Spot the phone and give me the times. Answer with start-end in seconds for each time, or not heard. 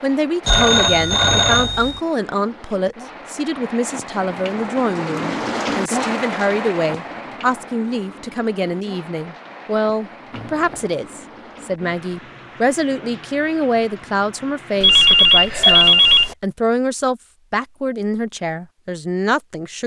0.5-2.0, 10.3-10.9, 14.8-16.4.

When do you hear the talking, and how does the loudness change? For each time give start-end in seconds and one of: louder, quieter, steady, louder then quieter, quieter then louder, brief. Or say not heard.
0.0-19.8 steady.